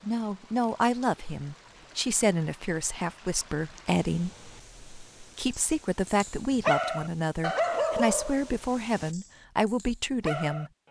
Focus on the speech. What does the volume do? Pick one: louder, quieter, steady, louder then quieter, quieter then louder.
steady.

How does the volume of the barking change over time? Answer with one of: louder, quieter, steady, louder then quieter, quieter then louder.
quieter then louder.